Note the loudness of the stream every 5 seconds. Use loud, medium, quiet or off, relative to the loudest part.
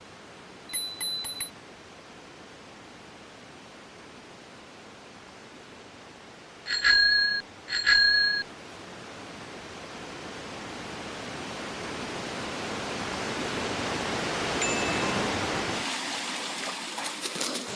quiet, quiet, loud, loud.